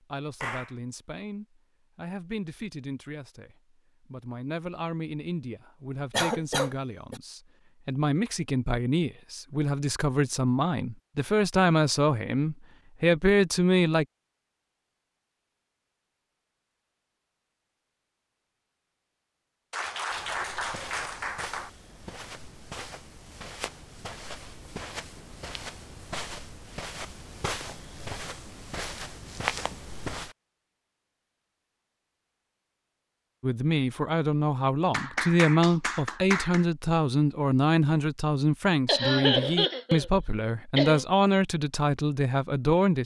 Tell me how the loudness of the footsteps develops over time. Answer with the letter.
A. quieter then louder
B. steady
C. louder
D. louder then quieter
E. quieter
C.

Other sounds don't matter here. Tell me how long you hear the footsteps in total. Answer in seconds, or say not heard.
10 s.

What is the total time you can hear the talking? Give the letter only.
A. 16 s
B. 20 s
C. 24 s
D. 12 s
C.